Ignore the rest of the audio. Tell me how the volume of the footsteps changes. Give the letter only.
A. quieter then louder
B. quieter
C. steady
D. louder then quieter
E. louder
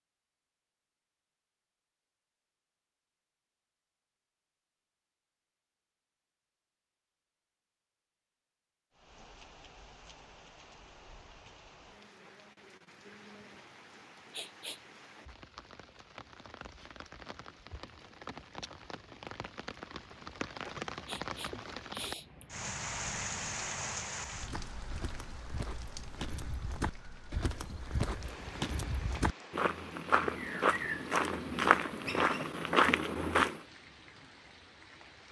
E.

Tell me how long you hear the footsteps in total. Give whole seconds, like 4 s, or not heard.
9 s.